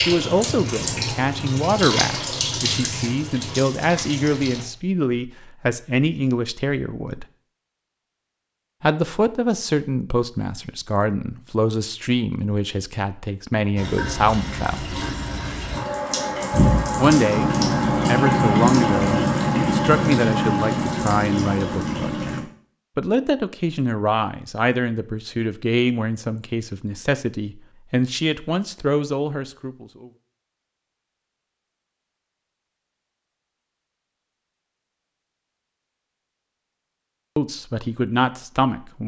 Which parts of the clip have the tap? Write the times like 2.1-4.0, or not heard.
0.0-4.7, 13.8-22.4.